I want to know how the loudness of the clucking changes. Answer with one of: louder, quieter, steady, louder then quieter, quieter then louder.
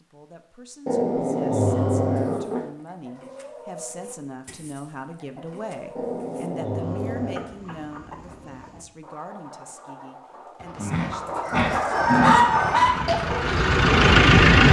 louder.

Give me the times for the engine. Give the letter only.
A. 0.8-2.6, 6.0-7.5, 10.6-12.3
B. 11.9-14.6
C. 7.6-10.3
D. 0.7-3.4
B.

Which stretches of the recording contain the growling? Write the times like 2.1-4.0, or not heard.
0.8-2.6, 6.0-7.5, 10.6-12.3.